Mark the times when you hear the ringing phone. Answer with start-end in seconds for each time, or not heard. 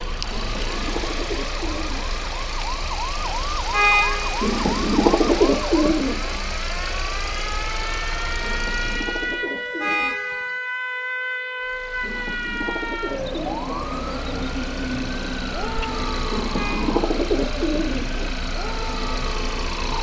not heard.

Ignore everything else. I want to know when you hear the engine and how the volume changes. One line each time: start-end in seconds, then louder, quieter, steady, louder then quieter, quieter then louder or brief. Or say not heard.
0.0-9.4 steady
11.6-19.9 louder.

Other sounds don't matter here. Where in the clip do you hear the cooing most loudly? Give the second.
5 s.